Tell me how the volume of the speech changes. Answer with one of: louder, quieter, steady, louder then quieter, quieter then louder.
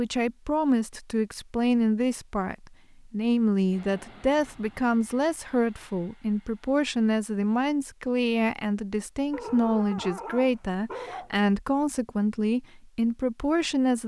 steady.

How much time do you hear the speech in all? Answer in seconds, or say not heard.
14 s.